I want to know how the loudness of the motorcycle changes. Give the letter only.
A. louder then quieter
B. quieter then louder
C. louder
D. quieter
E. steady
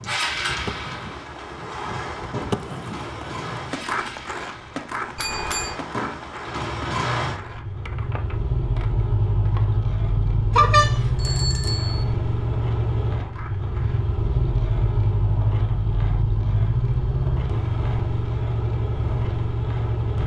C.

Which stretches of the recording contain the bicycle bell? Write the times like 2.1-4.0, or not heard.
5.2-5.8, 10.6-12.1.